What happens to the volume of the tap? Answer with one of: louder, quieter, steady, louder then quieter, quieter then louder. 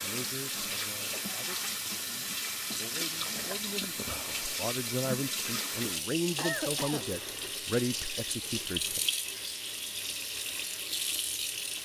steady.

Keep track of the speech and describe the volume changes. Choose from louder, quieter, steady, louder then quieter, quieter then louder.
louder.